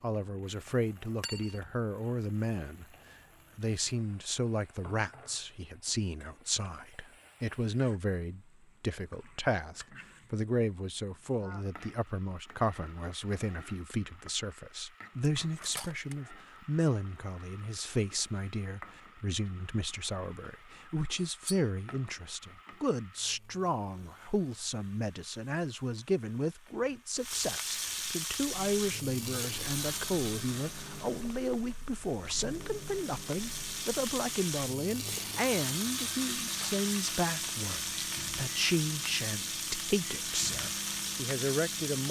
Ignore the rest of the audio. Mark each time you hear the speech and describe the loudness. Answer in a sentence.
The speech can be heard briefly from 0.0 to 2.9 s; and from 3.5 to 42.0 s, at a steady volume.